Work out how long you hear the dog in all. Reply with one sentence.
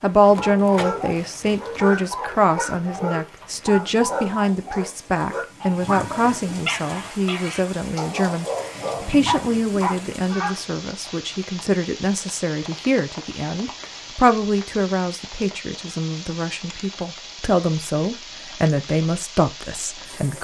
You can hear the dog for 10 seconds altogether.